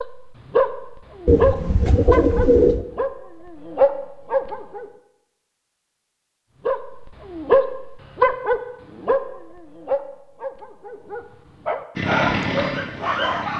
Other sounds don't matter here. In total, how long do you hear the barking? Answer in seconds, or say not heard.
12 s.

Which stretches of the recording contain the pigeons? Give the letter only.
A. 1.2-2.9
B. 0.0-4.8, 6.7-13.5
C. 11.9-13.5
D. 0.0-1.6
A.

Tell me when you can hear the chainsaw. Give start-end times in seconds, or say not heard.
11.9-13.5.